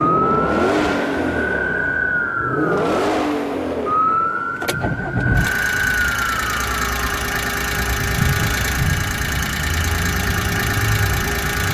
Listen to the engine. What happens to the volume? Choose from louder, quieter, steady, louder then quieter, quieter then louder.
steady.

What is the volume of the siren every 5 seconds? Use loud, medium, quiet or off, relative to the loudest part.
loud, loud, medium.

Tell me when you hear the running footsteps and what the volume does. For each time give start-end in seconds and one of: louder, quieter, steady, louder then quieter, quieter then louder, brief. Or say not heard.
not heard.